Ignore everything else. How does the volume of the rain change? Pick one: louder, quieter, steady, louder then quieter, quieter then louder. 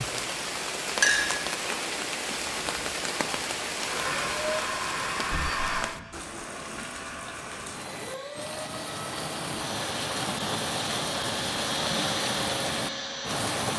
quieter then louder.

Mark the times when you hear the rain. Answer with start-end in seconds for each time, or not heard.
0.0-13.7.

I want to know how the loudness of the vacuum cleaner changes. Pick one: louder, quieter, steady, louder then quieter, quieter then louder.
quieter then louder.